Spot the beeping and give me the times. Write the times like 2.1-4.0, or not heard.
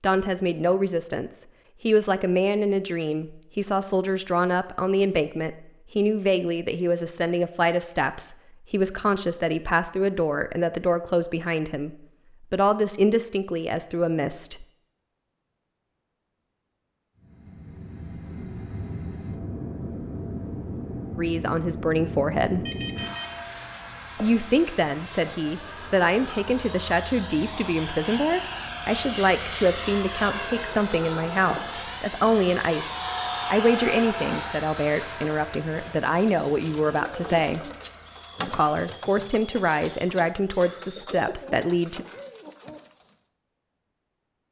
22.6-23.9.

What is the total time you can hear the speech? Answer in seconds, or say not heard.
33 s.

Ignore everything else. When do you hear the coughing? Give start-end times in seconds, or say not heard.
not heard.